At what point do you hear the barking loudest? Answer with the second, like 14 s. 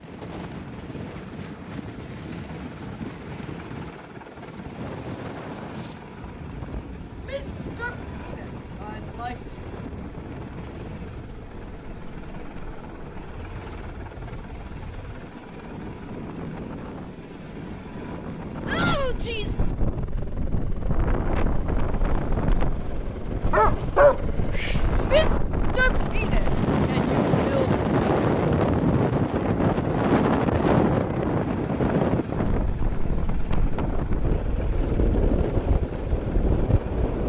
24 s.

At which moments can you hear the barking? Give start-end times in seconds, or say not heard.
23.5-25.4.